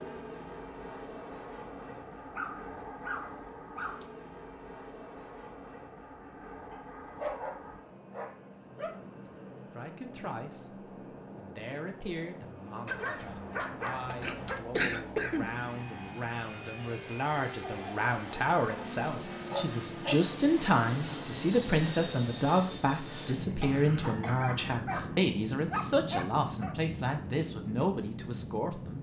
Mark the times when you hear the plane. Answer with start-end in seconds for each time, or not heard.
0.0-28.9.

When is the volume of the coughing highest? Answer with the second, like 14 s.
15 s.